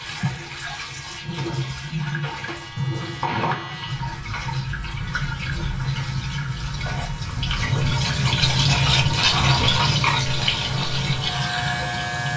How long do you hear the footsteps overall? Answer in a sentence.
You can't hear the footsteps here.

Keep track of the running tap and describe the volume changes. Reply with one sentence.
The loudness of the running tap goes up.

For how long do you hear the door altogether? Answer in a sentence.
You can hear the door for 2 seconds altogether.